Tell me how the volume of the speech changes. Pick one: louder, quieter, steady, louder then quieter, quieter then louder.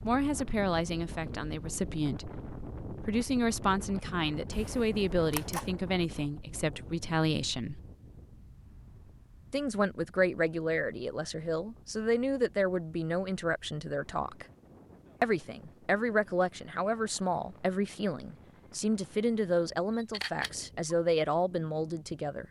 steady.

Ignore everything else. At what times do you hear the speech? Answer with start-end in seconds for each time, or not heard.
0.0-7.8, 9.5-14.4, 15.2-22.4.